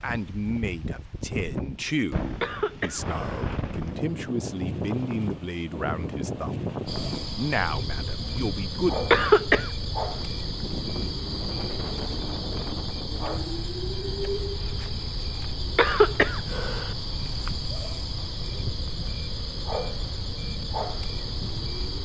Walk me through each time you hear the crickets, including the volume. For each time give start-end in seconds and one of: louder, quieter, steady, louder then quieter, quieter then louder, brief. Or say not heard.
6.8-21.9 steady.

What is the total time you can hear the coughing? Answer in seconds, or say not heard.
3 s.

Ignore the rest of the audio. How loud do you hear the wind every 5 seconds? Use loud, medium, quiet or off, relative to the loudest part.
loud, loud, loud, medium, medium.